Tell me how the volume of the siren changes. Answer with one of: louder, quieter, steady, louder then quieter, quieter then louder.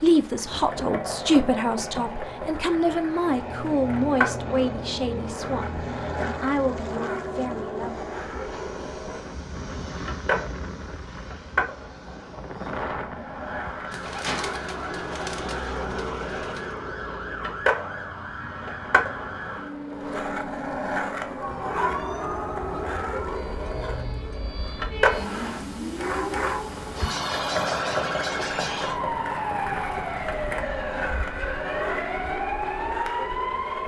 louder.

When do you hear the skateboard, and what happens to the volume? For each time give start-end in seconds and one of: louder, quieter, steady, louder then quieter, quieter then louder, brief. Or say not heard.
0.0-33.8 steady.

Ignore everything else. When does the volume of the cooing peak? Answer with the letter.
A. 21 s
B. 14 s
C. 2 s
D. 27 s
B.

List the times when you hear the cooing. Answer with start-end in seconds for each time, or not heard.
13.9-16.8.